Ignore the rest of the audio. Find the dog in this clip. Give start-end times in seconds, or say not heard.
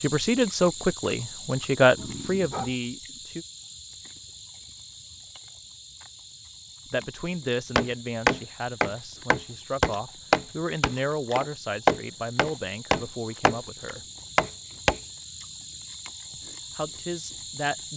1.9-2.8.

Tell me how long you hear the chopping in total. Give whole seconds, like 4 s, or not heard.
7 s.